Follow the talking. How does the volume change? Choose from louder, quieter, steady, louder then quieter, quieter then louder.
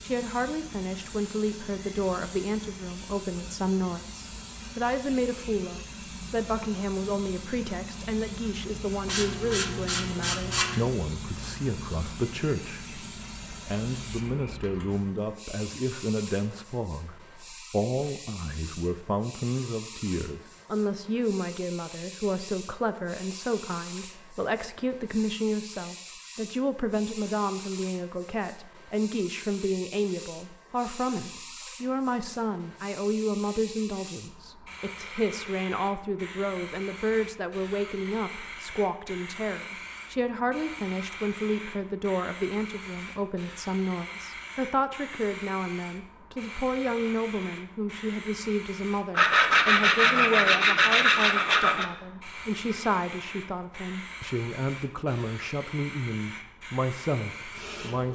steady.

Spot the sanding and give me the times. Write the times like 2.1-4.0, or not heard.
9.1-10.8, 49.1-51.9.